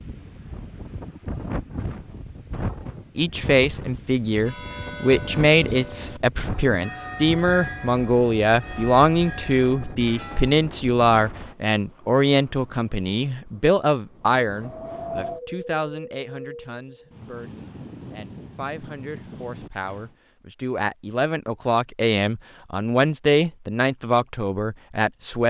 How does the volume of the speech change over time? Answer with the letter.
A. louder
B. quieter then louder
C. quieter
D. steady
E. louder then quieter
B.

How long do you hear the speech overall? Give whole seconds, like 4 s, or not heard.
22 s.